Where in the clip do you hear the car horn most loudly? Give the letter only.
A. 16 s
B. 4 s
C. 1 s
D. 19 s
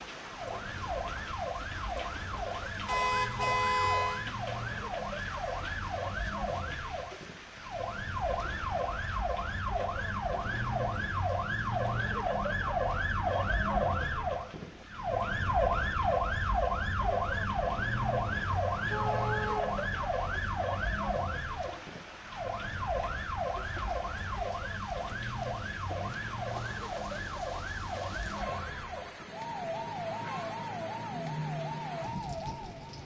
B.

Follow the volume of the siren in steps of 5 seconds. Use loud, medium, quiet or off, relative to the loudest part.
medium, medium, loud, loud, medium, medium, medium.